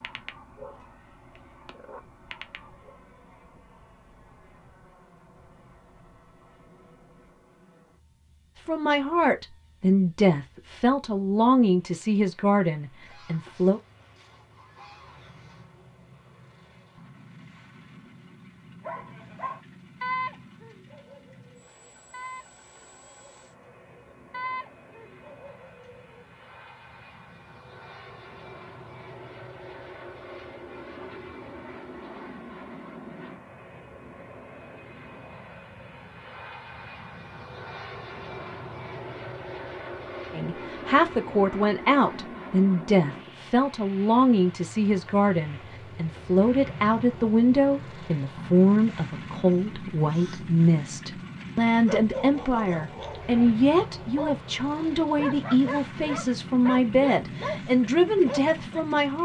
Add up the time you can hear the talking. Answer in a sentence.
The talking can be heard for 24 seconds in total.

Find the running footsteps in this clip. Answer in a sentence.
You can't hear the running footsteps here.